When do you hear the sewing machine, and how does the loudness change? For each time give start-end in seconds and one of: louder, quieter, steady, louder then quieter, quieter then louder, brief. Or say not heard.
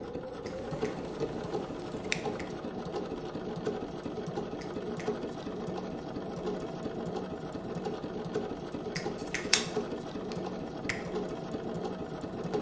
0.0-12.5 steady.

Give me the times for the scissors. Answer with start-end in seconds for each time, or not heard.
0.5-2.5, 9.2-9.7.